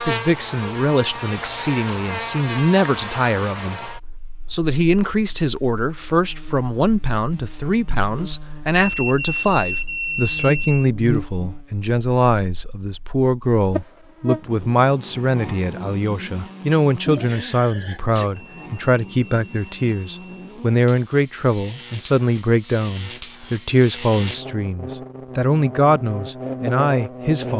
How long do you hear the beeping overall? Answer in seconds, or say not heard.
4 s.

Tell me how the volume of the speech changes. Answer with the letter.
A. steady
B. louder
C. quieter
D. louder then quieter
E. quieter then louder
A.